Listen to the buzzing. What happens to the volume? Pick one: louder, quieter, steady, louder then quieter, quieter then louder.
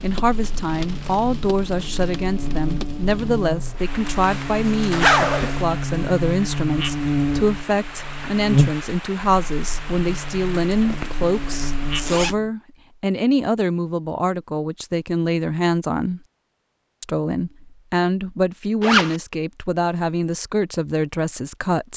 louder then quieter.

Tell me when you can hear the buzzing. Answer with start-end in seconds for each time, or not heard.
0.2-12.5.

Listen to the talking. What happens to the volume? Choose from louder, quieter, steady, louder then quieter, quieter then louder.
steady.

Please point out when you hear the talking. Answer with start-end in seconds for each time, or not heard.
0.0-16.2, 17.0-21.9.